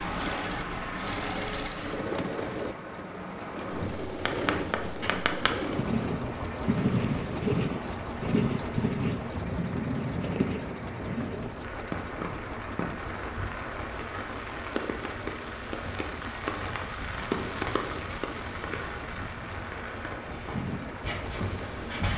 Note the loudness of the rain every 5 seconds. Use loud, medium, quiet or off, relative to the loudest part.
loud, medium, loud, loud, medium.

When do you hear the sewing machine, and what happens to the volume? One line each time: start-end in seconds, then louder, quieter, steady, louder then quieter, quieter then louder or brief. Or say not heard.
0.0-22.1 quieter.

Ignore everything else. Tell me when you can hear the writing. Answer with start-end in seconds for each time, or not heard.
3.8-11.5, 20.4-22.1.